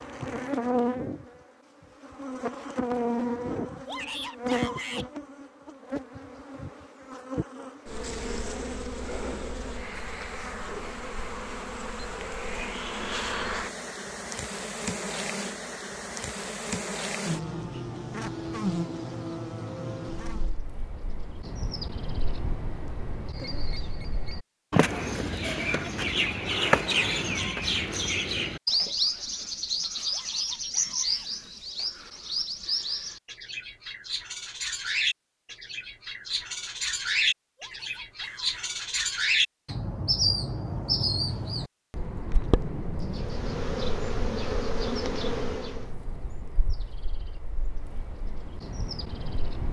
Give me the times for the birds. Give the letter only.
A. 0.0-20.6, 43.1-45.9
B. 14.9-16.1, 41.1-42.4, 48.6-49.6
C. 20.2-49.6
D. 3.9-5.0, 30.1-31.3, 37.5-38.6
C.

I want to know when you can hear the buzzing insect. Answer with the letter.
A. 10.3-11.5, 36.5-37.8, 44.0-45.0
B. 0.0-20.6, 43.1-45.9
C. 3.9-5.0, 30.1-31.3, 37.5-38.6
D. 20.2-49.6
B.